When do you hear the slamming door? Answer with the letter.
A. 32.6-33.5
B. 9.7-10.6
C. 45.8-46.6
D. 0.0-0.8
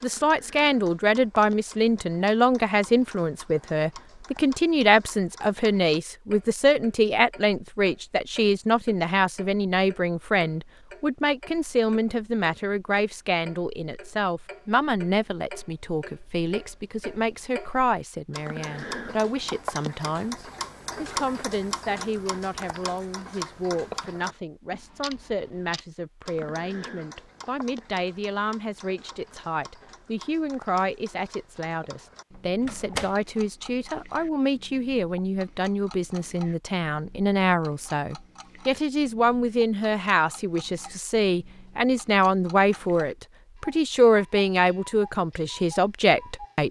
A.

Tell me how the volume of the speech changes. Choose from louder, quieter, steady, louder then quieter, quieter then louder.
quieter then louder.